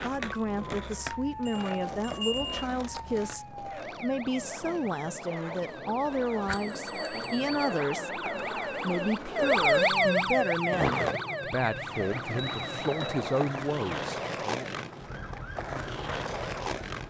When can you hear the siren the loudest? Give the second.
10 s.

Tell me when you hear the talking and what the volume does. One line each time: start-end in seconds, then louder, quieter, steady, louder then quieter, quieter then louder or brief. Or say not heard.
0.0-14.7 steady.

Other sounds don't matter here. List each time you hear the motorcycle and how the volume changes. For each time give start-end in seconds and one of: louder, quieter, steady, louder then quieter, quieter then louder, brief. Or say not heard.
not heard.